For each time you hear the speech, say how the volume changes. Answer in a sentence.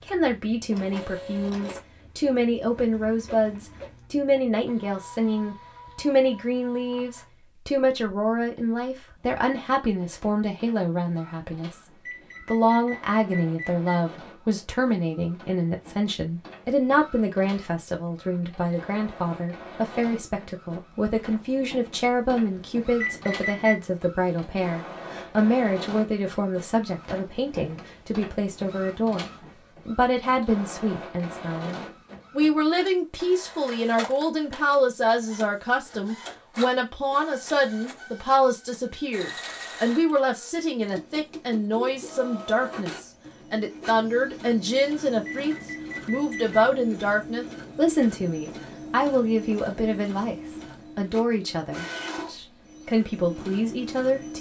You can hear the speech from 0.0 to 54.3 s, at a steady volume.